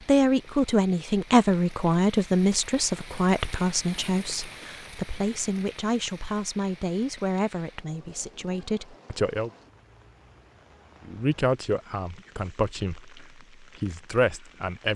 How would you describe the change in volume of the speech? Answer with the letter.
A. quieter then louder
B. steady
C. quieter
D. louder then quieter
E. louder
C.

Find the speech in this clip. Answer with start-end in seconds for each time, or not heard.
0.1-9.5, 11.1-14.9.